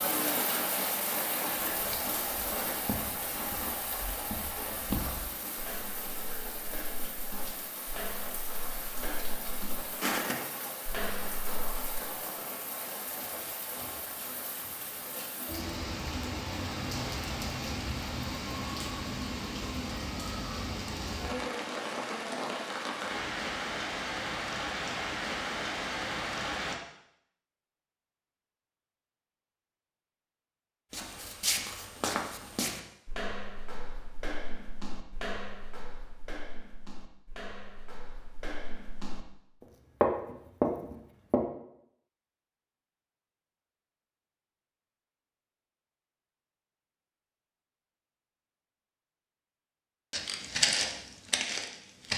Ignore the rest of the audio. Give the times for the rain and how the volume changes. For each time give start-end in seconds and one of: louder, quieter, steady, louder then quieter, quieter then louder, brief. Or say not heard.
0.0-26.8 quieter then louder.